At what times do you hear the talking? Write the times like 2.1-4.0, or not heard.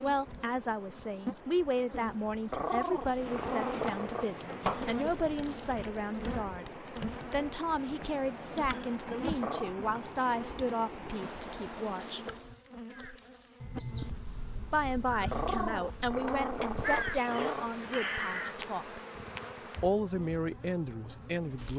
0.0-12.2, 14.7-19.0, 19.8-21.7.